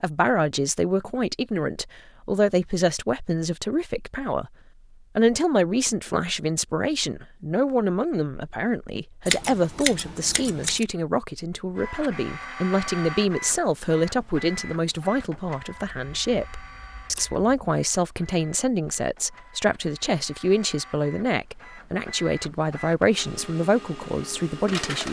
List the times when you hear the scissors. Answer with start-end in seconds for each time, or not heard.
9.2-10.8, 15.8-17.4.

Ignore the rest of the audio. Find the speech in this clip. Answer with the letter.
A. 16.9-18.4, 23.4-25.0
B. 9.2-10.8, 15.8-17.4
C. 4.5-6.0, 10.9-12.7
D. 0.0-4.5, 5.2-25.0
D.